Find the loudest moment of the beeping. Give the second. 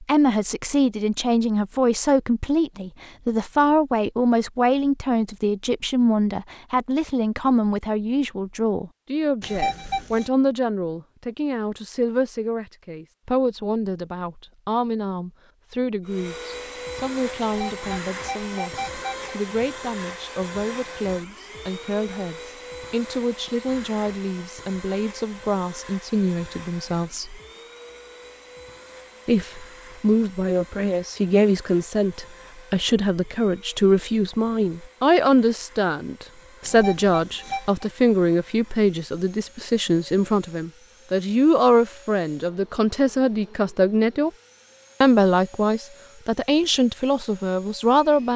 10 s.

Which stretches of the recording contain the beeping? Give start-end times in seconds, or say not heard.
9.4-10.3, 17.4-19.4, 36.6-37.9.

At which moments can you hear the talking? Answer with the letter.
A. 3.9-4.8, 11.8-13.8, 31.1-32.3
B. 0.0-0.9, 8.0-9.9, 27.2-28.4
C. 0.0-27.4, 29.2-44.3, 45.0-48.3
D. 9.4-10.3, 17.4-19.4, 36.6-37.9
C.